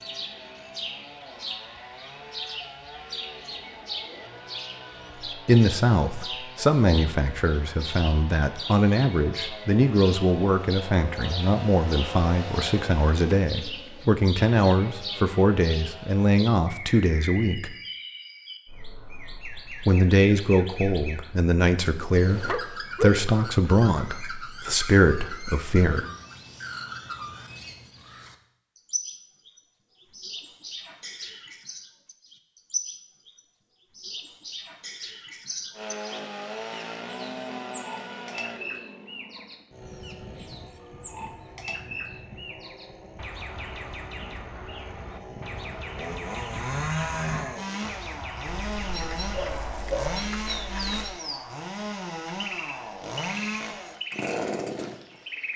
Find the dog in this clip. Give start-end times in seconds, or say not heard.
22.1-23.7, 48.6-51.2.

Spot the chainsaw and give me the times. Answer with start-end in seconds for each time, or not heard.
0.0-16.3, 35.8-55.2.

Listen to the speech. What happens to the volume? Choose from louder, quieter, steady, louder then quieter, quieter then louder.
steady.